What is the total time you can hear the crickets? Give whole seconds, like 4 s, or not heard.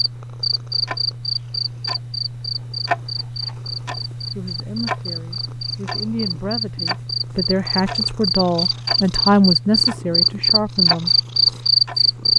12 s.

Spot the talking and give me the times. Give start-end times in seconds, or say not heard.
4.3-11.1.